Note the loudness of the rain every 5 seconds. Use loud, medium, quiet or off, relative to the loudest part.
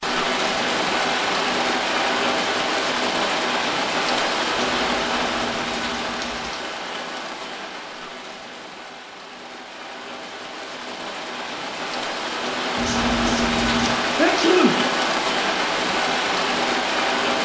loud, medium, loud, loud.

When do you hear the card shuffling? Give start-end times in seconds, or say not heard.
4.7-6.5, 12.8-13.9.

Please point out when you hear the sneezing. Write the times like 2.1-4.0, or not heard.
14.2-14.8.